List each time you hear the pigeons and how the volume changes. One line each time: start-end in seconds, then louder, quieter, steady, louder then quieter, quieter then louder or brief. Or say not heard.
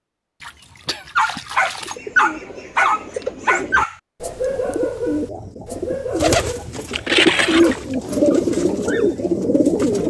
1.8-10.0 louder.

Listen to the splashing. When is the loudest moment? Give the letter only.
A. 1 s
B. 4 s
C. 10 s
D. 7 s
D.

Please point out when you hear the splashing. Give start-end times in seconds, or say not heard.
0.4-1.9, 6.3-8.0.